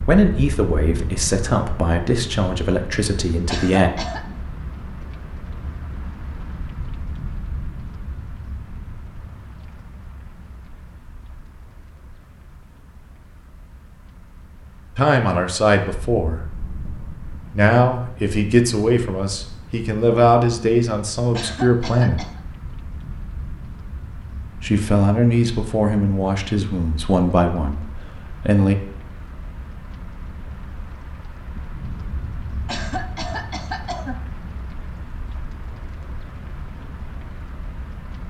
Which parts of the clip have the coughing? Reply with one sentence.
The coughing can be heard from 3.5 to 4.2 s, from 21.3 to 22.4 s and from 32.6 to 34.2 s.